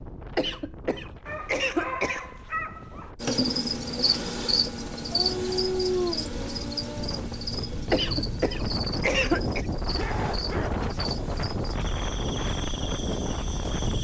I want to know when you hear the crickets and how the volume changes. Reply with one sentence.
The crickets can be heard from 3.2 to 13.9 s, getting quieter.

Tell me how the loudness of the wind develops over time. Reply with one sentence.
The loudness of the wind goes up.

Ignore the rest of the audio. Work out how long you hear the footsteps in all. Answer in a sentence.
The footsteps can't be heard in this clip.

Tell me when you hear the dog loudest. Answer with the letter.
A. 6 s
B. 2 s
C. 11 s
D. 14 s
A.